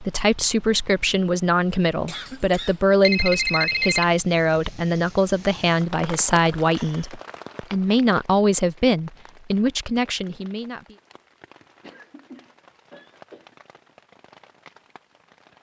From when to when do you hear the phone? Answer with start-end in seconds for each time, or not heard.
3.0-4.0.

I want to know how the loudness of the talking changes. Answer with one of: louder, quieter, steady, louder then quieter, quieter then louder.
steady.